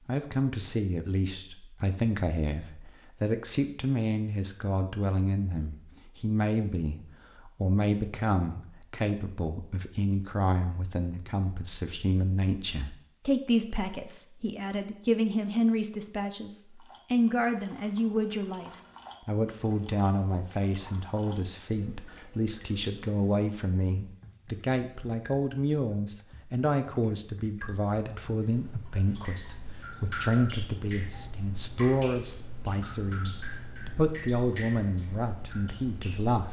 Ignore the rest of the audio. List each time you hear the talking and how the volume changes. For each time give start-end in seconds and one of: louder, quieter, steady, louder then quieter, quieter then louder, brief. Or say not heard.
0.1-36.4 steady.